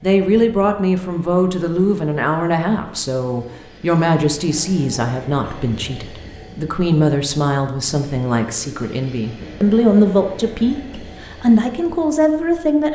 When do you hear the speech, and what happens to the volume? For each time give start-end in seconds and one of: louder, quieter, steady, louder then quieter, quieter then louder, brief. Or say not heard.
0.0-12.9 steady.